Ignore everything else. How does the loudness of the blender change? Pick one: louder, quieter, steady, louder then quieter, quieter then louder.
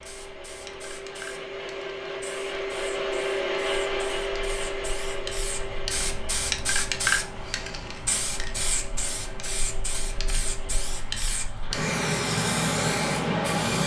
louder then quieter.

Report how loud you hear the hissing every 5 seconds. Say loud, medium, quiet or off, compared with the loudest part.
quiet, loud, loud.